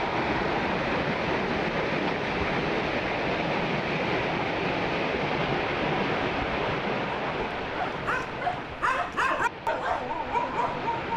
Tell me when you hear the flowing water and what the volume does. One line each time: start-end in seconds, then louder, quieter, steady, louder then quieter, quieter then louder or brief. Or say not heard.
0.0-11.1 quieter.